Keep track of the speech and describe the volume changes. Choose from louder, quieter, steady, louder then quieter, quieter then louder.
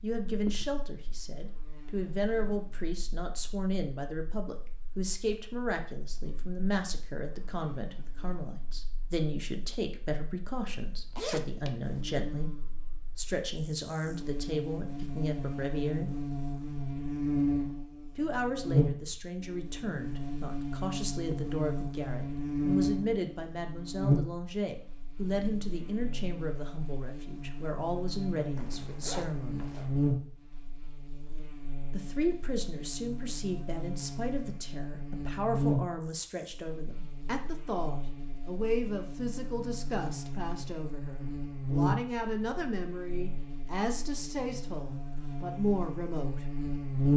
steady.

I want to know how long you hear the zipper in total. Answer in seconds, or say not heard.
3 s.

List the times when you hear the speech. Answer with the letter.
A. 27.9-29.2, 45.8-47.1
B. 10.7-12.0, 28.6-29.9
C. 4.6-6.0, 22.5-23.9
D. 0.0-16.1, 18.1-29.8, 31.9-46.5
D.